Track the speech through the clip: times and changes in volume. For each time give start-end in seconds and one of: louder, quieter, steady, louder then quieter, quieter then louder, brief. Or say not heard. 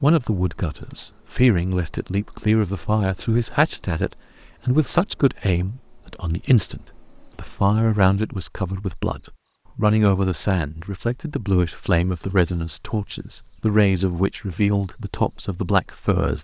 0.0-16.4 steady.